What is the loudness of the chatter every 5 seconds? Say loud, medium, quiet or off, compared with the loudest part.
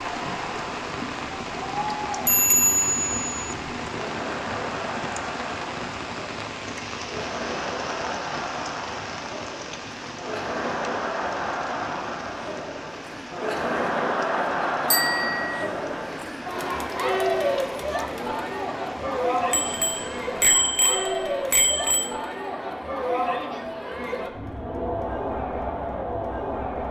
medium, medium, loud, loud, loud, loud.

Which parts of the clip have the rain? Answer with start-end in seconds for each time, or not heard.
0.0-20.5.